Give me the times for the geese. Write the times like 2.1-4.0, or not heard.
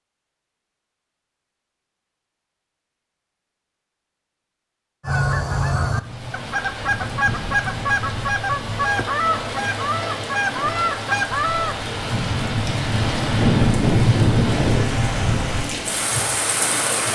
5.0-11.8.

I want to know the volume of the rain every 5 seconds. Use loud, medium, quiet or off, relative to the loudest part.
off, medium, loud, loud.